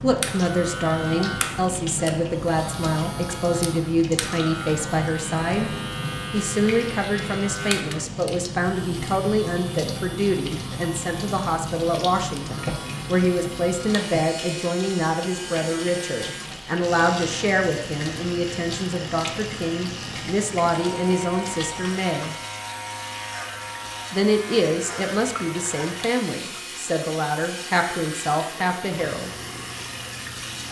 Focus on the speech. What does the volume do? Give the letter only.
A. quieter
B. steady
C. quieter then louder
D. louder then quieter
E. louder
B.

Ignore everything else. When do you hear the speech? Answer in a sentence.
The speech can be heard from 0.0 to 5.7 s, from 6.3 to 22.4 s and from 24.1 to 29.3 s.